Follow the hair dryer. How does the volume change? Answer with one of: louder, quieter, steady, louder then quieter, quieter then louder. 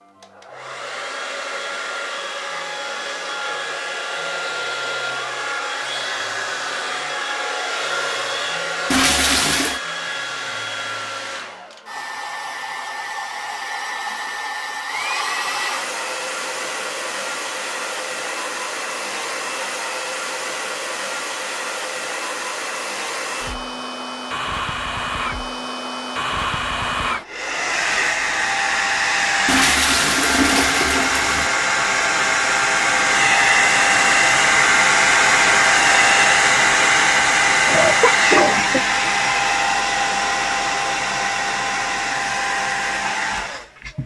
louder.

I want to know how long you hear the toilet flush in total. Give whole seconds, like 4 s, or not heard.
3 s.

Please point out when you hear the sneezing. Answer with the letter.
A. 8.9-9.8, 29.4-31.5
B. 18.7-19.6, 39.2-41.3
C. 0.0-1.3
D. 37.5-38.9
D.